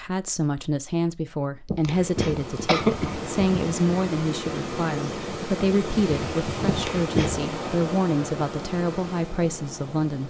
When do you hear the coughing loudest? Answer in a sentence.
The volume of the coughing peaks at 3 seconds.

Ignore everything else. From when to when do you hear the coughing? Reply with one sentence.
The coughing can be heard from 1.6 to 3.3 s and from 6.7 to 7.5 s.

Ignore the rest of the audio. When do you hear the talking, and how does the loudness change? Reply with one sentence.
You can hear the talking from 0.0 to 10.2 s, at a steady volume.